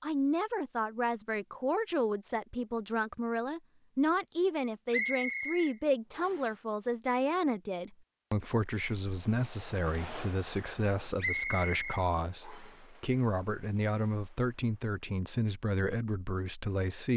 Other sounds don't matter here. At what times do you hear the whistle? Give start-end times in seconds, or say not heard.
4.9-6.5, 11.2-12.8.